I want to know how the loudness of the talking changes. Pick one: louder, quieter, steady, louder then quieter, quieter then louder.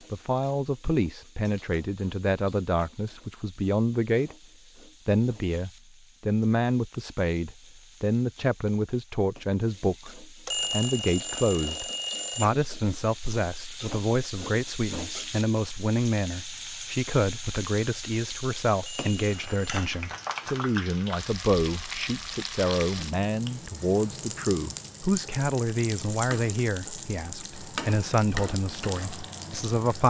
steady.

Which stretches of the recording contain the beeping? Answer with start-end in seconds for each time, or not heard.
10.4-12.4, 18.8-19.6.